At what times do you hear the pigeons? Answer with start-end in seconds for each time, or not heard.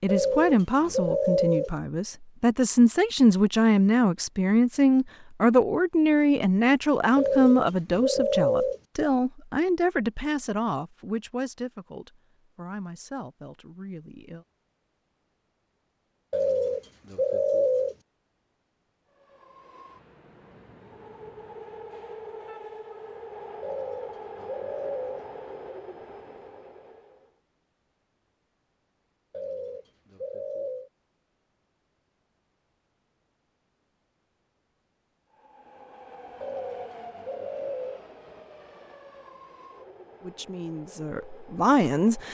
0.1-1.7, 7.2-8.8, 16.3-17.9, 23.6-25.2, 29.3-30.9, 36.4-38.0.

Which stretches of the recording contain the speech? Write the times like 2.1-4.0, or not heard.
0.0-14.4, 40.2-42.2.